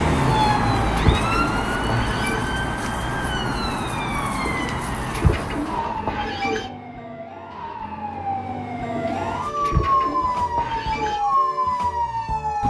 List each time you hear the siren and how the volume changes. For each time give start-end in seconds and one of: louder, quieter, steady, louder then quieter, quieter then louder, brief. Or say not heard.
0.0-12.6 quieter then louder.